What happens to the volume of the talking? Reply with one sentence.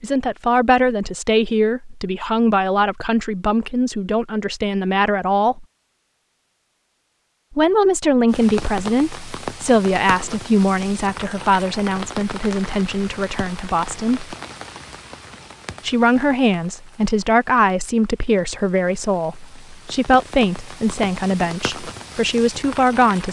The loudness of the talking stays about the same.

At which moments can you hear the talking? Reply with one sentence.
You can hear the talking from 0.0 to 5.7 s, from 7.5 to 14.3 s and from 15.8 to 23.2 s.